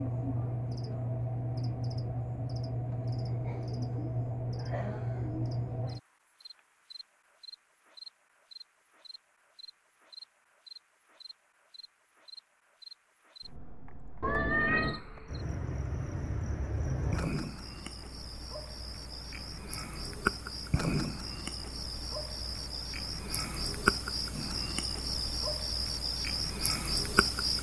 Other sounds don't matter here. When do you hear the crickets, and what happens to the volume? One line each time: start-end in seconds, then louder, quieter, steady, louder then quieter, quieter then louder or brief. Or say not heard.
0.0-27.5 quieter then louder.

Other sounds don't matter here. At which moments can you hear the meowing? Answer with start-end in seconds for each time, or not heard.
14.2-15.0.